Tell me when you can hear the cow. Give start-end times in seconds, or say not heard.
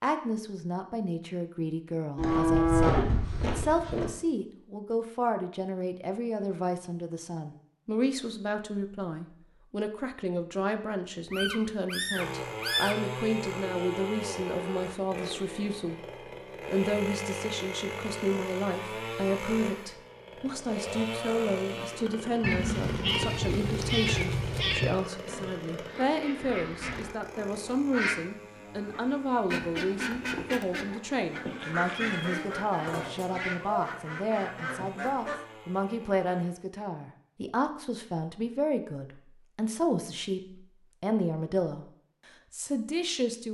2.1-4.0.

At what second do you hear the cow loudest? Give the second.
3 s.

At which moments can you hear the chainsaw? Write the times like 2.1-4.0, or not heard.
12.1-36.6.